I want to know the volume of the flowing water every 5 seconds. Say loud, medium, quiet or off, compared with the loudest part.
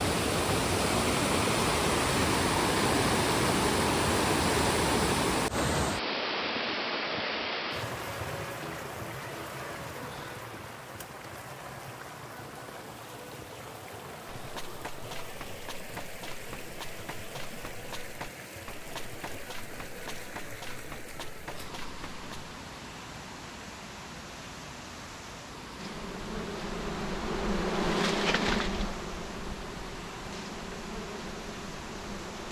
loud, medium, quiet, quiet, quiet, quiet, quiet.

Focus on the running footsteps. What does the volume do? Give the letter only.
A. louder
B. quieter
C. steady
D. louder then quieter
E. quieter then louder
C.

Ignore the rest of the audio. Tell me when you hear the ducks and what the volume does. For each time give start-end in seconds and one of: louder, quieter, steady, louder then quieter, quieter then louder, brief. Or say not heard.
not heard.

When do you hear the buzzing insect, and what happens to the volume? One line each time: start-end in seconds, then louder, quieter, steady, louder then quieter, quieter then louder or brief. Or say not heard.
25.8-32.4 louder then quieter.